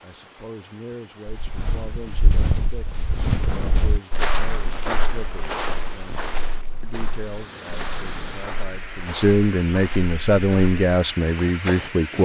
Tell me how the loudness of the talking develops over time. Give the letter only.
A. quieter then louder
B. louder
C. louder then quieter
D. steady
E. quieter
B.